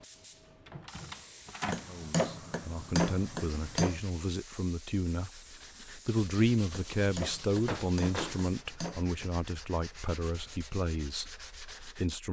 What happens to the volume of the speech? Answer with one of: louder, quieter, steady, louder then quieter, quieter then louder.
louder then quieter.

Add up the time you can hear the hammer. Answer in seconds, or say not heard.
5 s.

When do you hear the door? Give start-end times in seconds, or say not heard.
0.7-1.9, 7.7-8.4.